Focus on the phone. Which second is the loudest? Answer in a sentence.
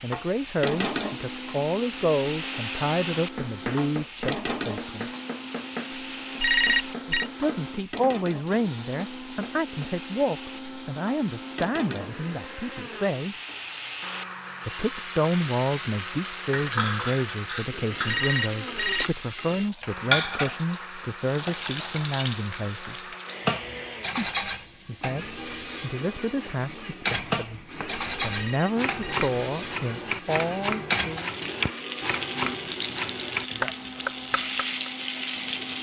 The loudest moment of the phone is at 7 seconds.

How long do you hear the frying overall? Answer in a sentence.
The frying can be heard for 36 seconds in total.